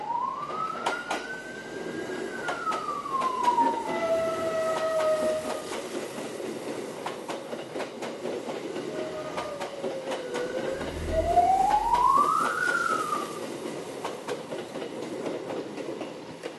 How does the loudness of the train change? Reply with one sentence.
The loudness of the train stays about the same.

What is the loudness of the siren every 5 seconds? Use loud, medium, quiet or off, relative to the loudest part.
loud, medium, loud, off.